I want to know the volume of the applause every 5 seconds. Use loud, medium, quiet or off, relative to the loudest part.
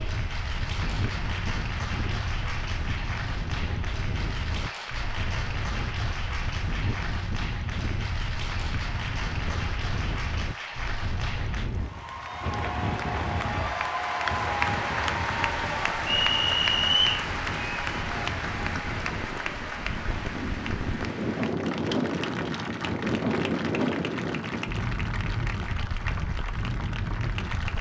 medium, medium, loud, loud, medium, medium.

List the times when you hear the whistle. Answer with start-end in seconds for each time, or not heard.
16.1-17.2.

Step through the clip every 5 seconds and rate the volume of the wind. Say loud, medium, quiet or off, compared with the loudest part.
medium, medium, medium, medium, loud, medium.